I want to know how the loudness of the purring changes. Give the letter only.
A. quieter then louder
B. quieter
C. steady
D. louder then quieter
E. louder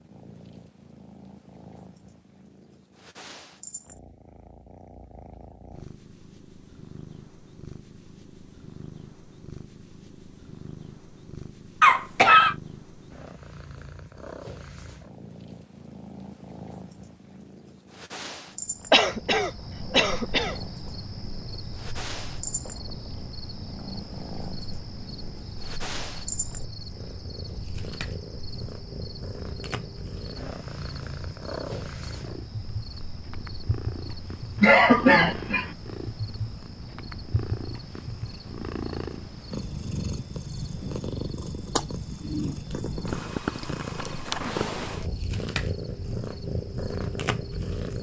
E.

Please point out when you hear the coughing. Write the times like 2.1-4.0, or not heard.
11.8-12.6, 18.9-20.6, 34.6-35.7.